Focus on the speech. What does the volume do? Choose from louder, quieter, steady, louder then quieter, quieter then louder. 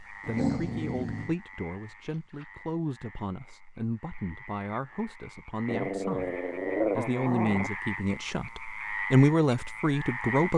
louder.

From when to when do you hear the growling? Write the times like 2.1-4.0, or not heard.
0.2-1.4, 5.7-7.7.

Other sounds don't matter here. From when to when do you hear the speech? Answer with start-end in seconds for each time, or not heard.
0.1-10.5.